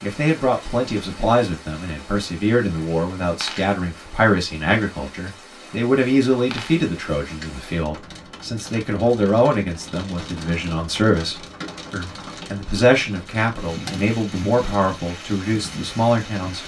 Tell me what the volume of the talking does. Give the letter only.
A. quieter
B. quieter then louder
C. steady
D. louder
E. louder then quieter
C.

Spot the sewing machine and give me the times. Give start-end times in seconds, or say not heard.
not heard.